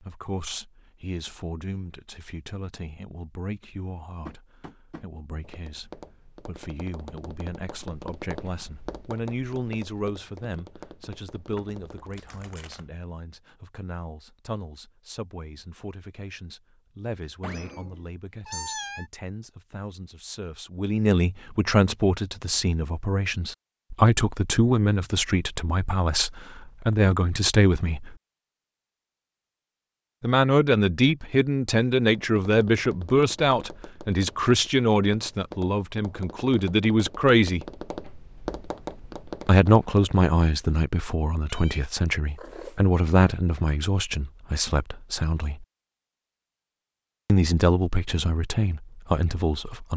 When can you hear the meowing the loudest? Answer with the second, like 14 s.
19 s.